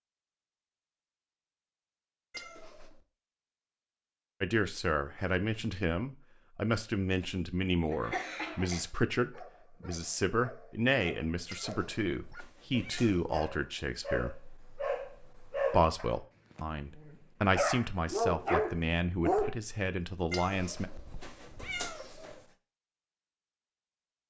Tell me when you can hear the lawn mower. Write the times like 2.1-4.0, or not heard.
not heard.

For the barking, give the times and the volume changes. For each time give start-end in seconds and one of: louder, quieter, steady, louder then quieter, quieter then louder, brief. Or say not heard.
9.3-19.6 louder.